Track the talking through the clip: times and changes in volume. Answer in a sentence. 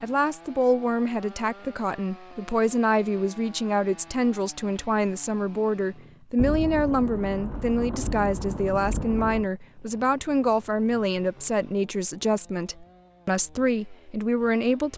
You can hear the talking from 0.0 to 14.9 s, at a steady volume.